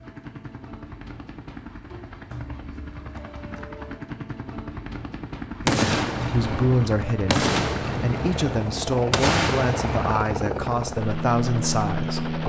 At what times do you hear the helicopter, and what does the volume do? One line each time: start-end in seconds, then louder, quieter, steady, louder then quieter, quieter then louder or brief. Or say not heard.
0.0-12.4 louder.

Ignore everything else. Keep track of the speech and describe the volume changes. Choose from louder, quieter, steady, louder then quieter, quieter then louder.
steady.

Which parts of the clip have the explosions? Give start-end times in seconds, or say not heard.
5.7-10.2.